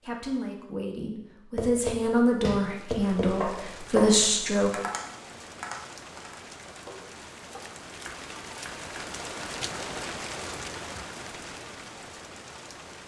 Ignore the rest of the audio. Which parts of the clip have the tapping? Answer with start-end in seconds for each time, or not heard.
1.6-9.1.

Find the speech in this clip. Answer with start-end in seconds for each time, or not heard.
0.1-4.7.